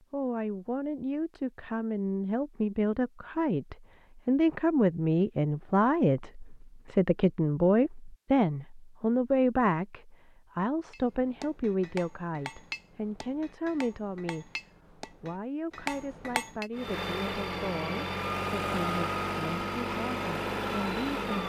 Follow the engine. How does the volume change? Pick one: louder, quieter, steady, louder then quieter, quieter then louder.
steady.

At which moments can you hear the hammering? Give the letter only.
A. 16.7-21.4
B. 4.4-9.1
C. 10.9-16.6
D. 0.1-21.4
C.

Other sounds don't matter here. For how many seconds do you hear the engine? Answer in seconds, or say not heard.
5 s.